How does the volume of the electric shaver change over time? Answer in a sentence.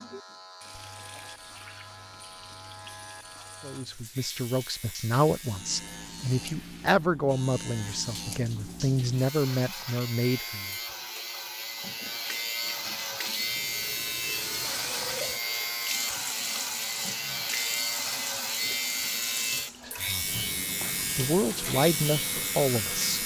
The volume of the electric shaver goes up.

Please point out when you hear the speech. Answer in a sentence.
You can hear the speech from 3.6 to 10.8 s, from 19.9 to 20.4 s and from 21.1 to 23.2 s.